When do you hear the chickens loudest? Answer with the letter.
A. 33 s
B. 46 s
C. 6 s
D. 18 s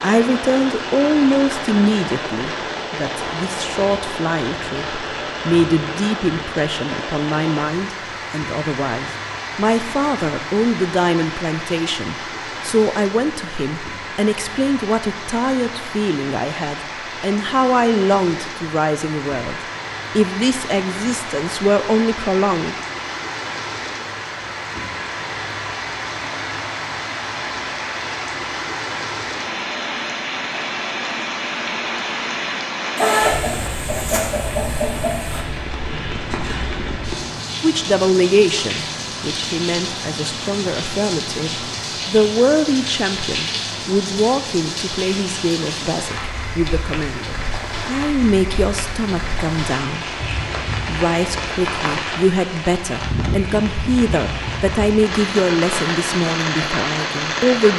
A.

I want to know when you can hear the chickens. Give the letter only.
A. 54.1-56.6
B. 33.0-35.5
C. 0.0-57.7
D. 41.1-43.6
B.